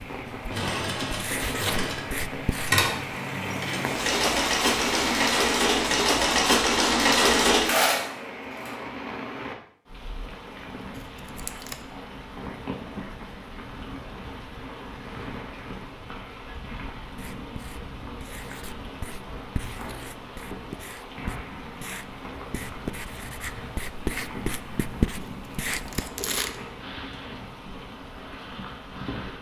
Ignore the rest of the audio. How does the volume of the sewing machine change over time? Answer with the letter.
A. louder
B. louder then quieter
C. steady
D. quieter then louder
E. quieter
A.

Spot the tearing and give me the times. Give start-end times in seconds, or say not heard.
10.9-11.8, 25.2-26.6.